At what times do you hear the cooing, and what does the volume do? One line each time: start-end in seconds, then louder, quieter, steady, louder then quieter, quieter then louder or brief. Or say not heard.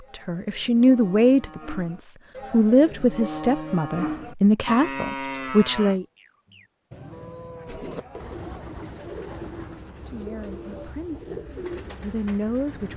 7.7-12.9 steady.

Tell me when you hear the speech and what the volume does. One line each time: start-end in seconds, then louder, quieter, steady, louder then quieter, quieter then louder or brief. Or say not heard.
0.1-6.0 quieter then louder
9.9-12.9 brief.